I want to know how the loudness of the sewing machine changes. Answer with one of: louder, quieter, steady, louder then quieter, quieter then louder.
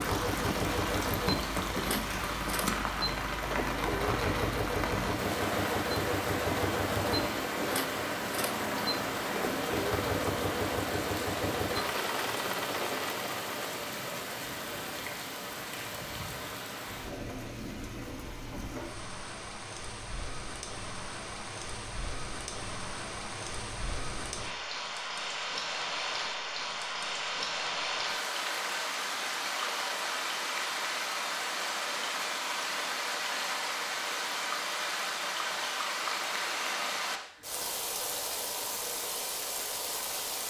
steady.